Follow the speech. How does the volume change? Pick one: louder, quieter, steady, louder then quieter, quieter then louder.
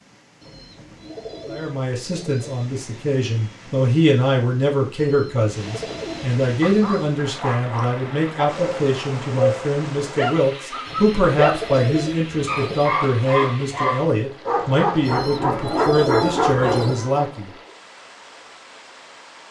steady.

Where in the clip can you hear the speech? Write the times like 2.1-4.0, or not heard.
1.4-17.5.